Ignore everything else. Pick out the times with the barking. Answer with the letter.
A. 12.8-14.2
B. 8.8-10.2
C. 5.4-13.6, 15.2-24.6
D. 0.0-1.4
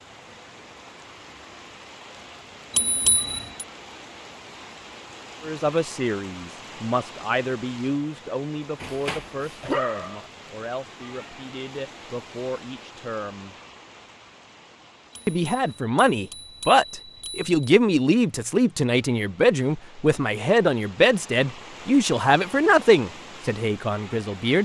B.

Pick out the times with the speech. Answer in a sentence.
The speech can be heard from 5.4 to 13.6 s and from 15.2 to 24.6 s.